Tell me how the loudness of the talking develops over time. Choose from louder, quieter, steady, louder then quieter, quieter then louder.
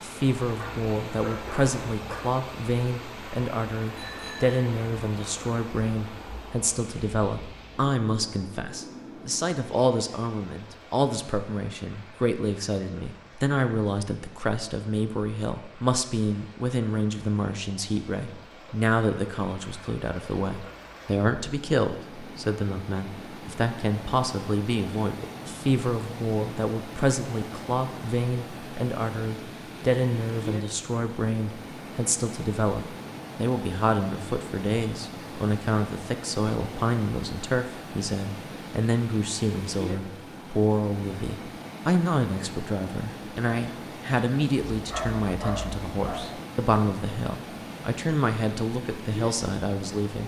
steady.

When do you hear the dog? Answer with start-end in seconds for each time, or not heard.
0.6-2.2, 44.8-46.2.